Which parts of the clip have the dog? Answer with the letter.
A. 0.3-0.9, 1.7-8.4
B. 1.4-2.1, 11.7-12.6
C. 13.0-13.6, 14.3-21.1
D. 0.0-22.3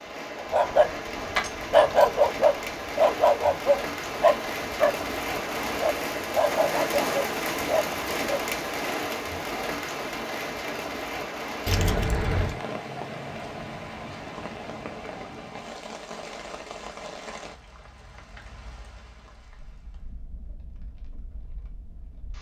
A.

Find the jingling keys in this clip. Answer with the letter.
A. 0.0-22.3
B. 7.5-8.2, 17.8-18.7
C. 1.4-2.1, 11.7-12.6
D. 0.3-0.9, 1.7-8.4
C.